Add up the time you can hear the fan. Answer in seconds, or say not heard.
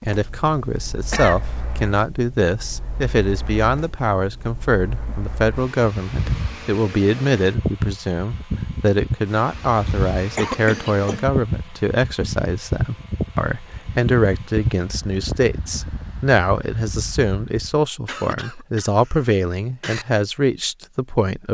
18 s.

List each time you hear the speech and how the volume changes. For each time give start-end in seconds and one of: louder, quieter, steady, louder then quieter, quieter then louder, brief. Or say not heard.
0.0-21.5 steady.